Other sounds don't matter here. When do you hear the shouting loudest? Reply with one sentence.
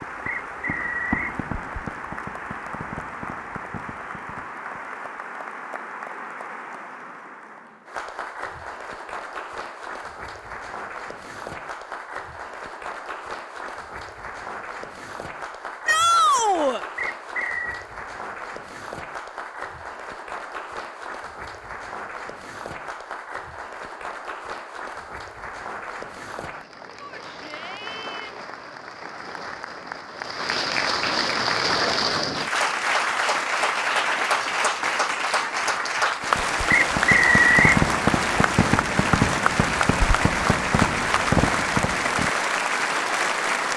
The loudest moment of the shouting is at 16 seconds.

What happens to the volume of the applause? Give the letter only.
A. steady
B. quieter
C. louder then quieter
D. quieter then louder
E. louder
E.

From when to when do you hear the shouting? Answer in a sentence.
You can hear the shouting from 15.8 to 16.8 s and from 26.9 to 28.4 s.